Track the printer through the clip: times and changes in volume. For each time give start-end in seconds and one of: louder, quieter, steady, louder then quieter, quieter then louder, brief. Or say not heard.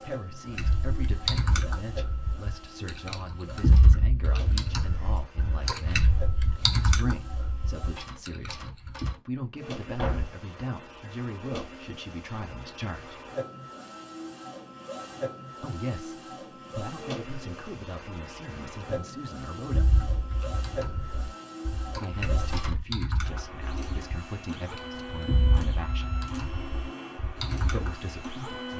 0.0-28.7 louder.